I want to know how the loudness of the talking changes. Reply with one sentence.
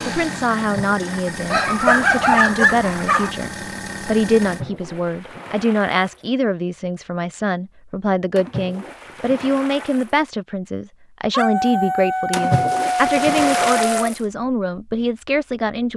The loudness of the talking stays about the same.